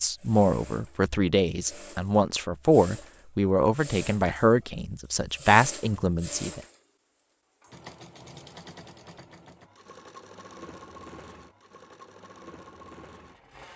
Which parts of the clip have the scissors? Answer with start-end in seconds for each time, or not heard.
not heard.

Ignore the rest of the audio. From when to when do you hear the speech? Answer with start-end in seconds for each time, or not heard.
0.0-6.6.